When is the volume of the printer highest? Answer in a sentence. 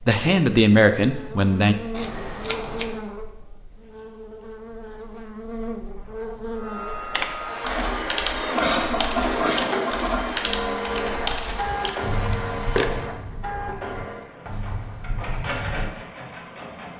The volume of the printer peaks at 9 seconds.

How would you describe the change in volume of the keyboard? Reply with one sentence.
The loudness of the keyboard goes down.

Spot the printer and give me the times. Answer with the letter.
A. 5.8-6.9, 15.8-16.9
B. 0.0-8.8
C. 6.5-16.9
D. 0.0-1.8
C.